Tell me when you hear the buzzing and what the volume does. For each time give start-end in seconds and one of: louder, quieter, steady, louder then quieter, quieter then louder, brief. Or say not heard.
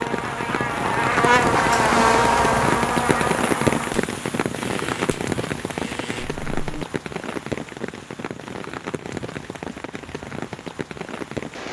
0.0-6.8 quieter.